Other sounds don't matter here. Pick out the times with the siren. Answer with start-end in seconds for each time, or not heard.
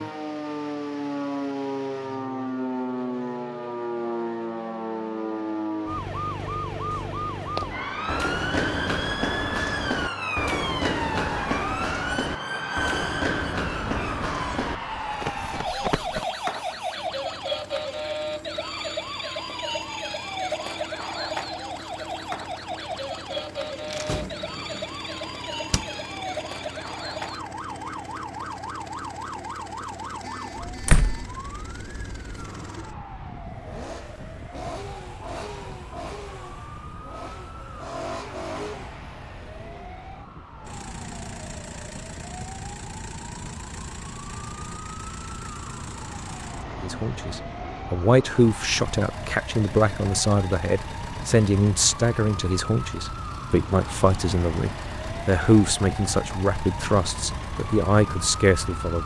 0.0-59.0.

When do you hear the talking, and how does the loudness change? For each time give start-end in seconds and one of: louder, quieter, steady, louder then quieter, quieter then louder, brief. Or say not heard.
46.8-59.0 steady.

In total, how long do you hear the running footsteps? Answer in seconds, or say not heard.
9 s.